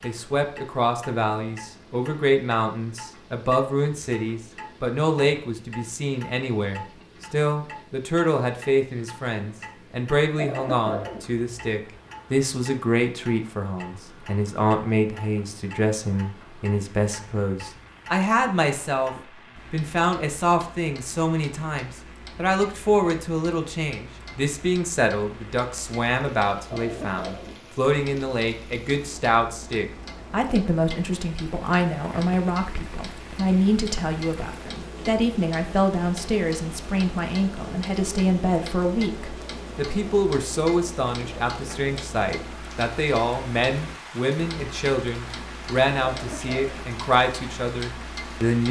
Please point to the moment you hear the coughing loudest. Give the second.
11 s.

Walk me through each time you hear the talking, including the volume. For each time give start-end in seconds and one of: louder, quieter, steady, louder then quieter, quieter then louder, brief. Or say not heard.
0.0-48.6 steady.